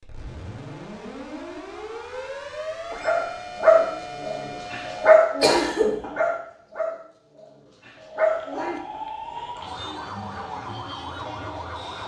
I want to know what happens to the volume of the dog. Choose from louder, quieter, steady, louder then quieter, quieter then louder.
quieter then louder.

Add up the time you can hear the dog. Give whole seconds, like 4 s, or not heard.
6 s.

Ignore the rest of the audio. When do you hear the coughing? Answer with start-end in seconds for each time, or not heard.
5.4-6.0.